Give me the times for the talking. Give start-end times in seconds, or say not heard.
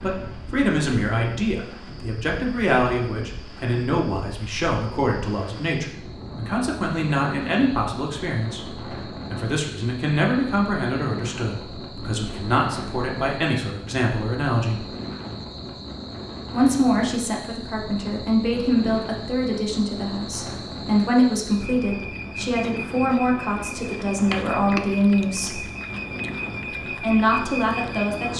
0.0-14.8, 16.5-25.6, 26.9-28.3.